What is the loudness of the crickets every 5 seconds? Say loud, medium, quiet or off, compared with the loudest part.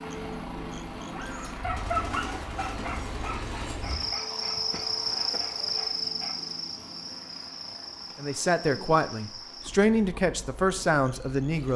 loud, loud, quiet.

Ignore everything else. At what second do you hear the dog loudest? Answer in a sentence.
The loudest moment of the dog is at 2 seconds.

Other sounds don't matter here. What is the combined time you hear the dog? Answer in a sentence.
The dog can be heard for 5 seconds in total.